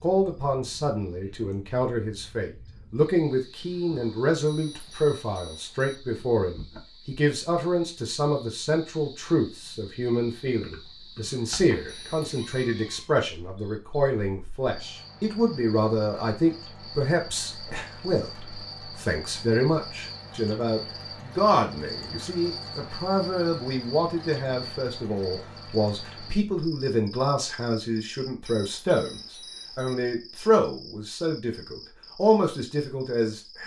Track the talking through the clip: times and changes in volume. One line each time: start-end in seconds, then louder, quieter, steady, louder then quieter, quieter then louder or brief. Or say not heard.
0.0-33.6 steady.